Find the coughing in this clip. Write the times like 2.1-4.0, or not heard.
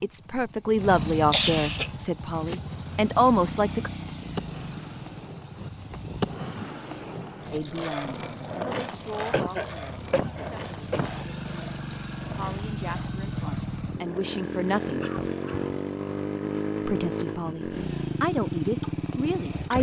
0.8-1.9, 9.3-11.1, 15.0-15.8.